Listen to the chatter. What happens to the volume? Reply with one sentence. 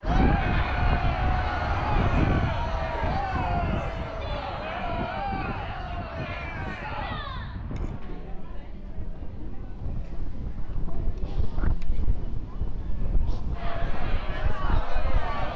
The volume of the chatter goes down, then up.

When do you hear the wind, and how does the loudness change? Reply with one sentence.
You can hear the wind from 0.0 to 15.5 s, getting quieter.